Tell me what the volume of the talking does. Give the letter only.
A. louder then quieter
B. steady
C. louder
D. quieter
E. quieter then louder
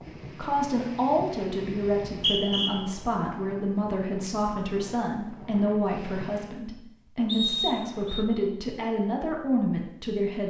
B.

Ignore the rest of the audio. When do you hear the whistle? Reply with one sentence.
The whistle can be heard from 2.1 to 2.7 s and from 7.2 to 8.2 s.